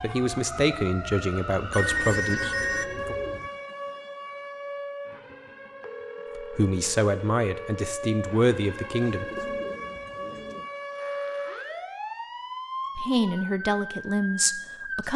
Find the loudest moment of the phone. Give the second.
2 s.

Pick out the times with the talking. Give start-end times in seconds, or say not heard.
0.0-3.1, 6.3-9.2, 12.9-15.1.